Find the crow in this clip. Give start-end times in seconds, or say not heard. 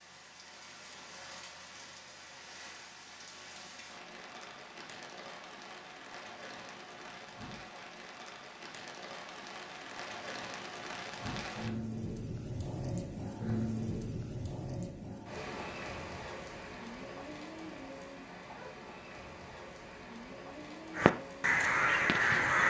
20.9-22.6.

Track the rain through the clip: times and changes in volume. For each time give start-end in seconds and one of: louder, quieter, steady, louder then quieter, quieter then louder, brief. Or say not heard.
0.0-22.5 louder then quieter.